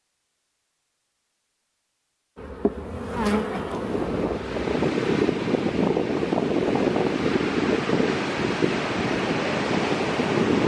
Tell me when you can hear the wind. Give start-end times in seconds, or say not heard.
3.5-10.6.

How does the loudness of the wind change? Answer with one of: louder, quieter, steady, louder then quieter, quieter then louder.
steady.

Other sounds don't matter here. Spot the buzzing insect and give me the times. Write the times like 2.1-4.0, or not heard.
2.4-4.8.